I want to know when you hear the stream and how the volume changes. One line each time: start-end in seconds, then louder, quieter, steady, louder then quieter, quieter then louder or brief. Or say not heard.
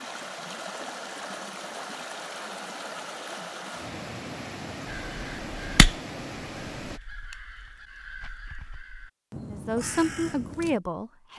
0.0-7.0 steady.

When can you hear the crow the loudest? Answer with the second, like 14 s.
6 s.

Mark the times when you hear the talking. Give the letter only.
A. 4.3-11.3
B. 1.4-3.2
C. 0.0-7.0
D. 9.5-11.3
D.